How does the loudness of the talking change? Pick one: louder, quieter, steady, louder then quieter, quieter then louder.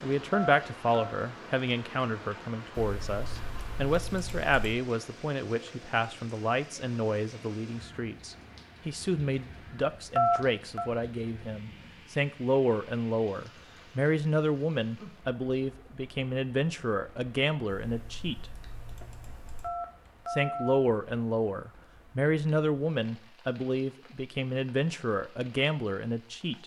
steady.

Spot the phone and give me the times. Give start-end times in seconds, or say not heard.
0.3-1.1, 10.2-10.9, 19.6-20.9.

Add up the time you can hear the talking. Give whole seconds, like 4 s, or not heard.
25 s.